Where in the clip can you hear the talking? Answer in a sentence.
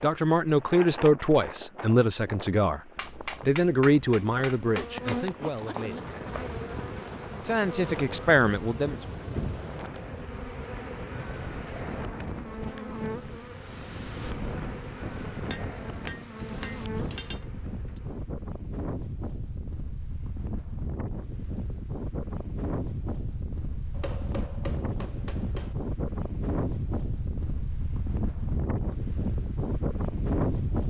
The talking can be heard from 0.0 to 6.1 s and from 7.5 to 9.0 s.